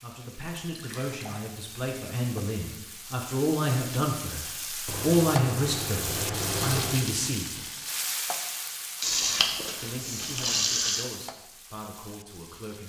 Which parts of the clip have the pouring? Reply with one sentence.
You can hear the pouring from 0.6 to 1.4 s, from 4.8 to 7.0 s and from 9.0 to 11.1 s.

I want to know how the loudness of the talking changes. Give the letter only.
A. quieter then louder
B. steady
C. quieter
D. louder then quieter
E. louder
D.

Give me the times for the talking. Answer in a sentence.
You can hear the talking from 0.0 to 7.7 s and from 9.8 to 12.8 s.